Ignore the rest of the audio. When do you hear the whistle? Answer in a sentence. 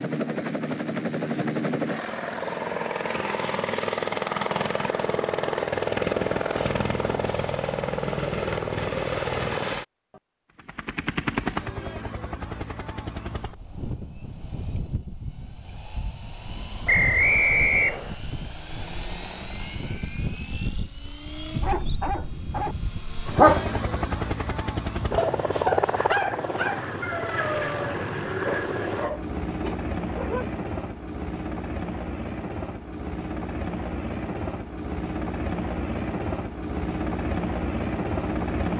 The whistle can be heard from 16.9 to 18.1 s.